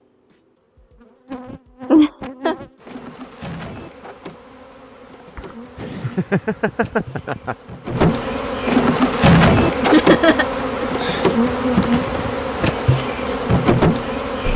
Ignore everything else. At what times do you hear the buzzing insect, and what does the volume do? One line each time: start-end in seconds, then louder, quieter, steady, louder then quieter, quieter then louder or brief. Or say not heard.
0.0-14.5 louder.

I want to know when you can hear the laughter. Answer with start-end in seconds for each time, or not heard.
1.9-2.5, 5.3-7.5, 9.8-11.3.